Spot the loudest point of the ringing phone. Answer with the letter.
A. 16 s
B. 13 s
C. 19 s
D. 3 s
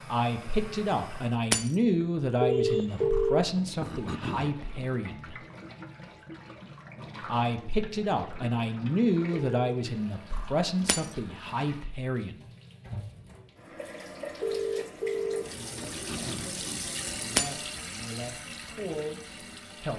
D.